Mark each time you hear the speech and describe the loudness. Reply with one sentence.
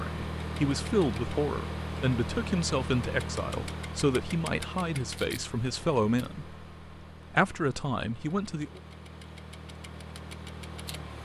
The speech can be heard from 0.0 to 6.5 s, at a steady volume; and briefly from 7.3 to 8.8 s.